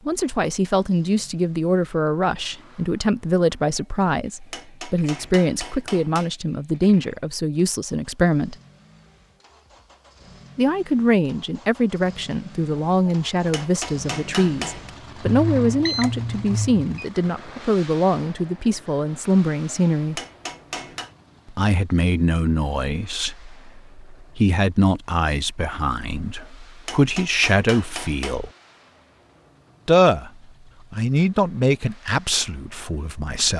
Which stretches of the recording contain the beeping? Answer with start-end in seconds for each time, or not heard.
15.2-16.9.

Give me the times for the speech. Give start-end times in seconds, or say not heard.
0.1-8.6, 10.6-20.2, 21.5-28.5, 29.9-30.3, 30.9-33.5.